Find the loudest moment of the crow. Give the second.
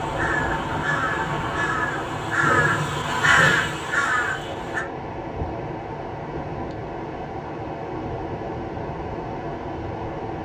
3 s.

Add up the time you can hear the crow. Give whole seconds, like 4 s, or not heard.
5 s.